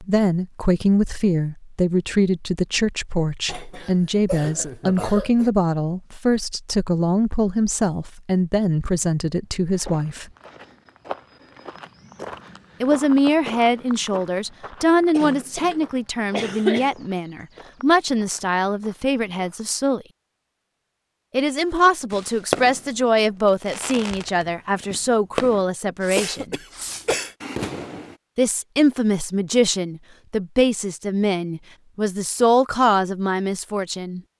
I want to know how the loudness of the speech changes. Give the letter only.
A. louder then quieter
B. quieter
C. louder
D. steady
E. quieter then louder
D.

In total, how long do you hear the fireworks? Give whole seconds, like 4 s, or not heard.
6 s.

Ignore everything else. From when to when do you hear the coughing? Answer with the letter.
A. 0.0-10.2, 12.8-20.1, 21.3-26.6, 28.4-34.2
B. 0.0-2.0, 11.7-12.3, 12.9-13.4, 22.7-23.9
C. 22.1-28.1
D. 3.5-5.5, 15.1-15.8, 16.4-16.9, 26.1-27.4
D.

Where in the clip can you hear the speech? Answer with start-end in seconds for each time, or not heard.
0.0-10.2, 12.8-20.1, 21.3-26.6, 28.4-34.2.